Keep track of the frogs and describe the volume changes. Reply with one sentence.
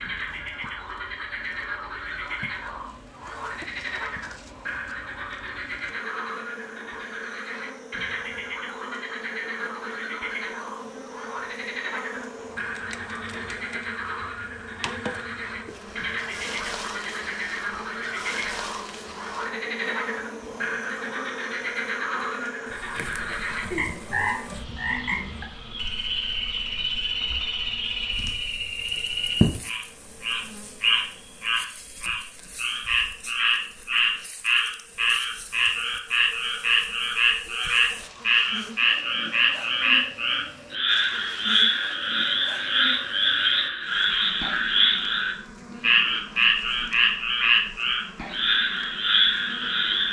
The volume of the frogs goes up.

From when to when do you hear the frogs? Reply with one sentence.
You can hear the frogs from 0.0 to 50.0 s.